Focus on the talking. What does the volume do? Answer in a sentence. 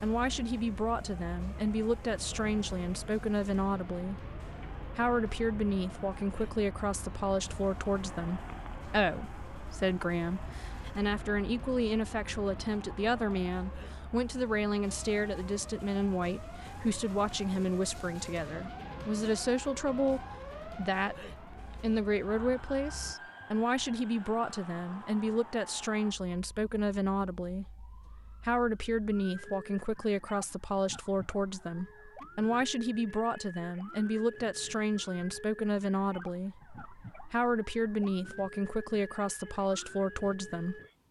The loudness of the talking stays about the same.